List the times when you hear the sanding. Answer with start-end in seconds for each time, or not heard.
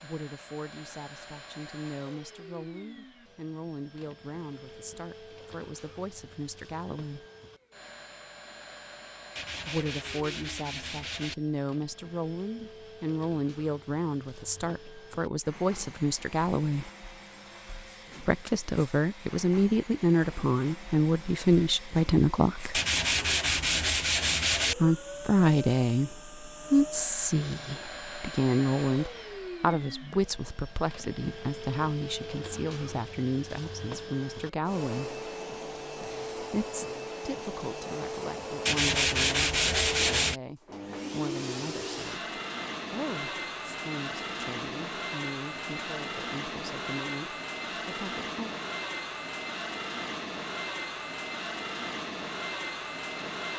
9.3-11.3, 22.7-24.8, 38.6-40.4.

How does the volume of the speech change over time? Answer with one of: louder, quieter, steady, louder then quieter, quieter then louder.
louder then quieter.